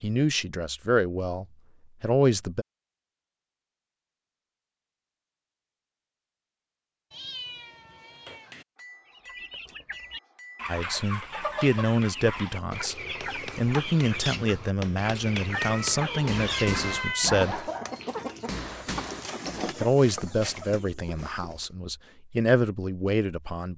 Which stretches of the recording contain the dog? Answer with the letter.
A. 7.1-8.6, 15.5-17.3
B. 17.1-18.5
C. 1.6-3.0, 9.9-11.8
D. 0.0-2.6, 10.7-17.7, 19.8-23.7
B.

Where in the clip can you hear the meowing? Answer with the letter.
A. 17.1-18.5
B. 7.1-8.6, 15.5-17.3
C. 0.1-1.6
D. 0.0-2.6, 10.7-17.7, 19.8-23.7
B.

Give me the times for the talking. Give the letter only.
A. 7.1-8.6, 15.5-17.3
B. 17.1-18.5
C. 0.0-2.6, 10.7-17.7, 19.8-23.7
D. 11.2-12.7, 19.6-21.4
C.